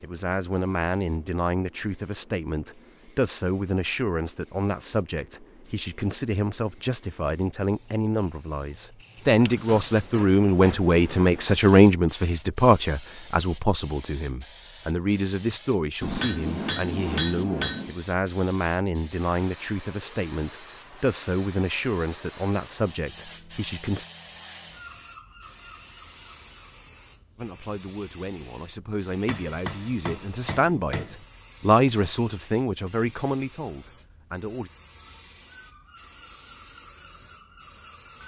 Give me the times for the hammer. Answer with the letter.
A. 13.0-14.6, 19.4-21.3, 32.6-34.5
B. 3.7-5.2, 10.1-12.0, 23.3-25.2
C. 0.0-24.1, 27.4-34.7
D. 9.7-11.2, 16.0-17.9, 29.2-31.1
D.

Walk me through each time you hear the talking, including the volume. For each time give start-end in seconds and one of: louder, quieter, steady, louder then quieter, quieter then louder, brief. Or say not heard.
0.0-24.1 louder then quieter
27.4-34.7 louder then quieter.